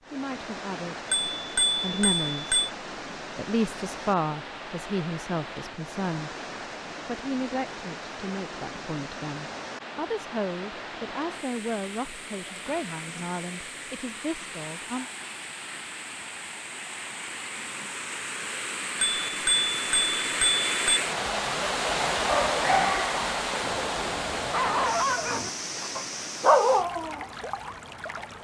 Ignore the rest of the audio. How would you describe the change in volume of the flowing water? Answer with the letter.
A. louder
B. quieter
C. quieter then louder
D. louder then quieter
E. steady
A.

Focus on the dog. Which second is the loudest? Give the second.
27 s.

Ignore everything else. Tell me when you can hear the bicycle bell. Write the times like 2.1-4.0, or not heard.
1.1-2.7, 19.0-21.0.